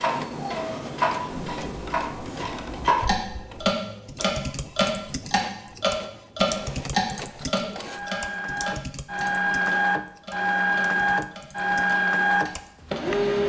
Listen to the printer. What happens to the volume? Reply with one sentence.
The volume of the printer goes up.